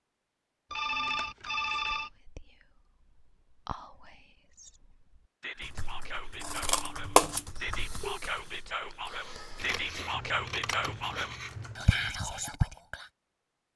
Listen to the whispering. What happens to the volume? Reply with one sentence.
The volume of the whispering goes up.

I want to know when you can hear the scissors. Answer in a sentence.
You can hear the scissors from 1.1 to 1.9 s, from 6.4 to 7.4 s and from 9.6 to 11.7 s.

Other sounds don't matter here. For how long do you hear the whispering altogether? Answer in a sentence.
The whispering can be heard for 11 seconds in total.